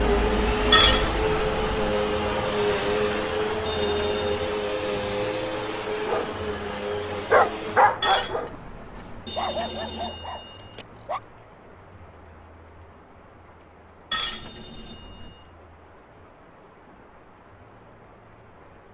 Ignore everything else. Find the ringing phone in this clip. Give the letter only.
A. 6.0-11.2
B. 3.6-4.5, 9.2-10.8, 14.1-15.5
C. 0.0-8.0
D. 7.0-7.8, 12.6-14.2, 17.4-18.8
B.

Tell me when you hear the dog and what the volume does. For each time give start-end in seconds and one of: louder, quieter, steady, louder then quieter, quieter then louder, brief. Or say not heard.
6.0-11.2 louder then quieter.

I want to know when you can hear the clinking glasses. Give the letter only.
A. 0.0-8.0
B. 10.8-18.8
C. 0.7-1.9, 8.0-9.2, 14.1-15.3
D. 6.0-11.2
C.